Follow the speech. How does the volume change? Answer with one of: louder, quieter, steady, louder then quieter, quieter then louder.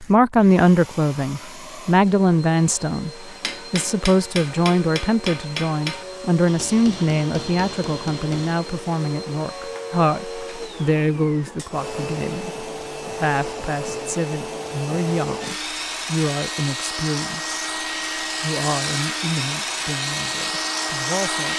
quieter.